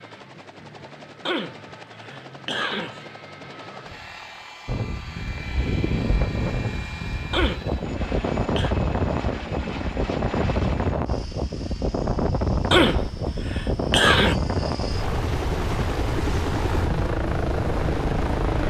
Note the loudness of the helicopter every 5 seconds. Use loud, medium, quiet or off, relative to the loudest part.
quiet, medium, medium, loud.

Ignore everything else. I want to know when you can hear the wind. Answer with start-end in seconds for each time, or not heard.
4.7-18.6.